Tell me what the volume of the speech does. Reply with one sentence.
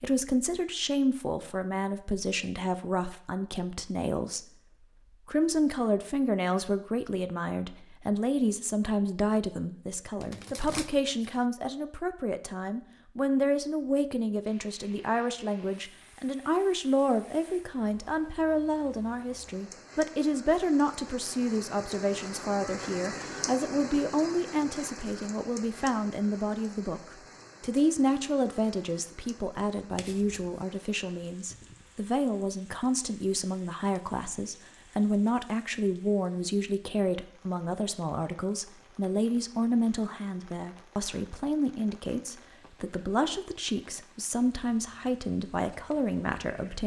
The loudness of the speech stays about the same.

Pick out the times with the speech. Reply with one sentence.
The speech can be heard from 0.0 to 4.5 s and from 5.2 to 46.8 s.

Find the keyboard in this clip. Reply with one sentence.
The keyboard can't be heard in this clip.